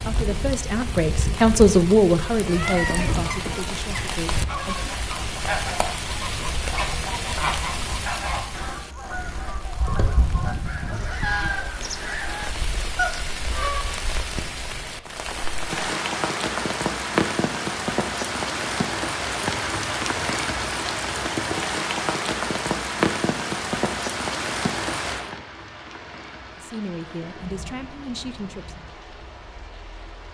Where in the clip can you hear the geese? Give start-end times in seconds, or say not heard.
2.4-13.8.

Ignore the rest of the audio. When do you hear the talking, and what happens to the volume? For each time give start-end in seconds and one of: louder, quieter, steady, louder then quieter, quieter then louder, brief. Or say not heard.
0.0-5.0 louder then quieter
26.6-28.8 brief.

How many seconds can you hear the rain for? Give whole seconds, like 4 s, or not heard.
30 s.